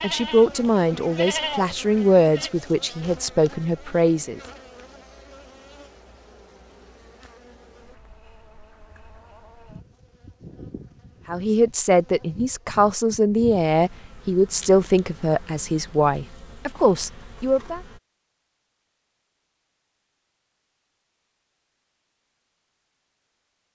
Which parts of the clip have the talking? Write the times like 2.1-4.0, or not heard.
0.0-4.4, 11.2-17.8.